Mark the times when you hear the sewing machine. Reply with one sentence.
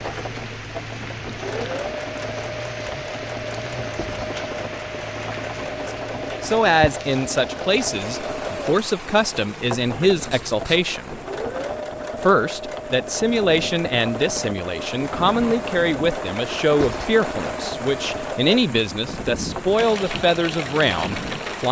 The sewing machine can be heard from 0.0 to 21.6 s.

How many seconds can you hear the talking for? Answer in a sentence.
You can hear the talking for 14 seconds altogether.